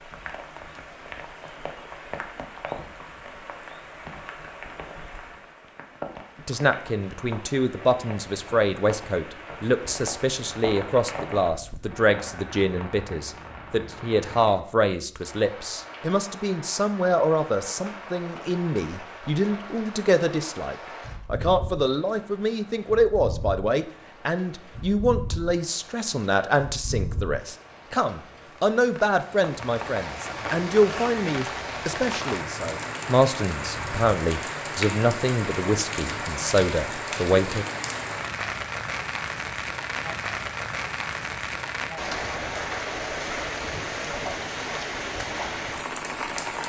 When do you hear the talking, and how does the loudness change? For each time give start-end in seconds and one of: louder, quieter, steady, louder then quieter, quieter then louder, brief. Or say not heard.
6.5-37.6 steady.